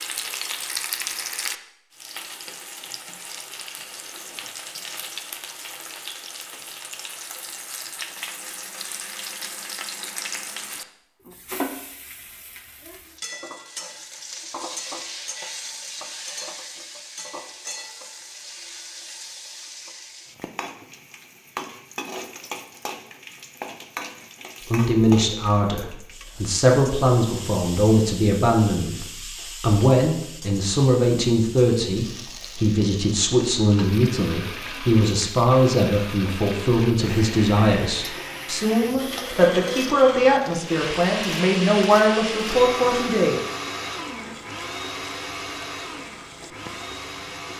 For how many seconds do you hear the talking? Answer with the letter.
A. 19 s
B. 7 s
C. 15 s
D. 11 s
A.